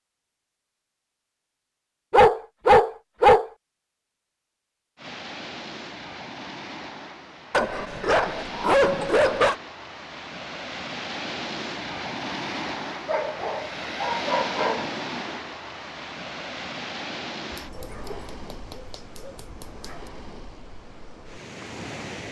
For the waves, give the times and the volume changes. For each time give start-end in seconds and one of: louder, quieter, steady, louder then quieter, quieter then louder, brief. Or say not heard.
5.0-22.2 louder then quieter.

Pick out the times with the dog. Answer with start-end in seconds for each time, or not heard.
2.1-3.5, 7.5-9.6, 13.1-14.9, 17.5-20.1.